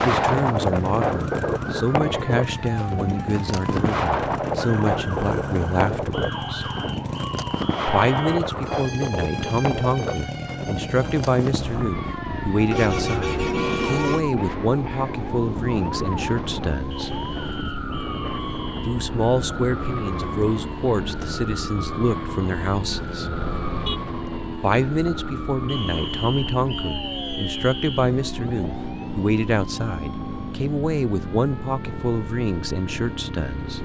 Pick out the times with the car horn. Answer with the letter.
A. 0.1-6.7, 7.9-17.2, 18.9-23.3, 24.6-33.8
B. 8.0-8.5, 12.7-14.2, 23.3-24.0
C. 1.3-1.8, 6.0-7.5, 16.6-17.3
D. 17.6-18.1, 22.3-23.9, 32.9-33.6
B.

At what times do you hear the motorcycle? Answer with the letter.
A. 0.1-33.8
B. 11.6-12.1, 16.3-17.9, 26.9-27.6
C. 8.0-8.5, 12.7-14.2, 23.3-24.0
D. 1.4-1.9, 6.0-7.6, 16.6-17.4
A.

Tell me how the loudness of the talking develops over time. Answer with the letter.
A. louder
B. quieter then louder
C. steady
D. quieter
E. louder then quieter
C.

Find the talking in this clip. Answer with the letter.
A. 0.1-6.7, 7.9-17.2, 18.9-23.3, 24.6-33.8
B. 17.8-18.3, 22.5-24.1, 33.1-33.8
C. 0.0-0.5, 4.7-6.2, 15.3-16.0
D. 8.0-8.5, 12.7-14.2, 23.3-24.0
A.